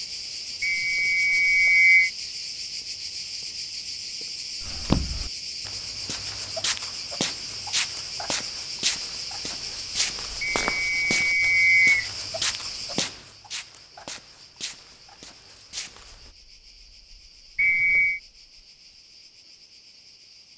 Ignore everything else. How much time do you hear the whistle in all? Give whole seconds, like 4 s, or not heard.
4 s.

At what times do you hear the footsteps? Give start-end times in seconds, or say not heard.
4.6-16.3.